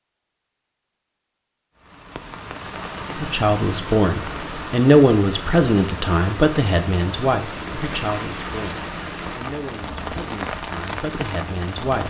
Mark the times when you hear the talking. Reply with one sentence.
You can hear the talking from 3.1 to 12.0 s.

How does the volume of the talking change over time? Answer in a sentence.
The volume of the talking goes down.